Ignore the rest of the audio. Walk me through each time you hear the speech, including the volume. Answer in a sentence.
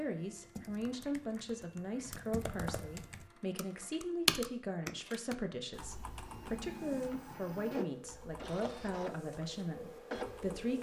The speech can be heard from 0.0 to 10.7 s, at a steady volume.